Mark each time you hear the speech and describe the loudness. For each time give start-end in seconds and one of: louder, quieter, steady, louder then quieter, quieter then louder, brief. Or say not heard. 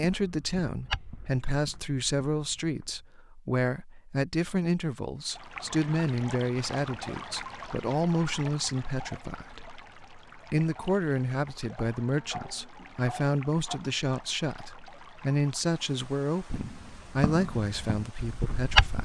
0.0-19.0 steady.